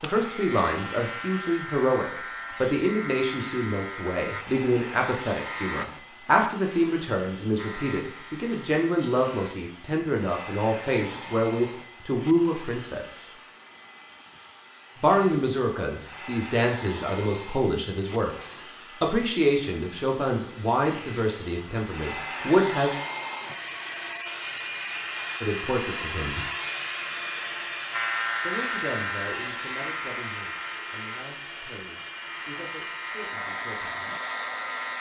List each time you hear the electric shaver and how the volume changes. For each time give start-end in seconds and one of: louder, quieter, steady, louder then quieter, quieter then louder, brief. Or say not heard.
0.0-5.8 quieter
7.5-9.6 brief
27.9-34.9 quieter then louder.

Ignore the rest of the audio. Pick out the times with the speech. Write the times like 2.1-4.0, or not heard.
0.0-13.3, 14.9-23.0, 25.4-26.4, 28.4-34.1.